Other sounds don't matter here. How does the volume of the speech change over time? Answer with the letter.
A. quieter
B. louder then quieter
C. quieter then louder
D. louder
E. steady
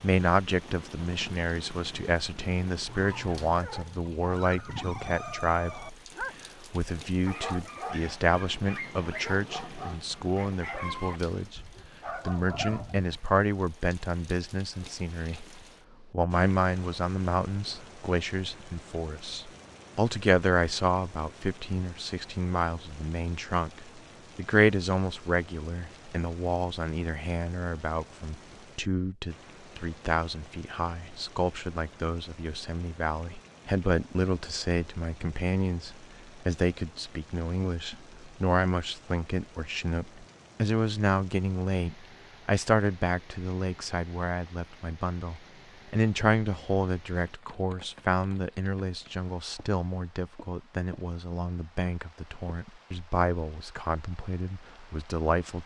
E.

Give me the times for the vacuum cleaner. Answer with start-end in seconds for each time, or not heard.
not heard.